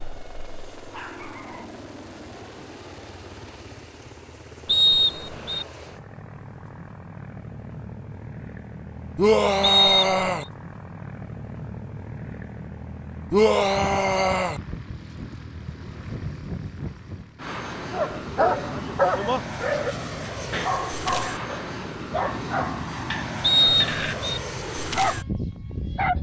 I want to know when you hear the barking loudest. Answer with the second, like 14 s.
19 s.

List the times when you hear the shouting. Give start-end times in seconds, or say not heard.
9.2-10.4, 13.3-14.6.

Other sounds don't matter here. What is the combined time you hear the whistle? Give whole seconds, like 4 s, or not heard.
3 s.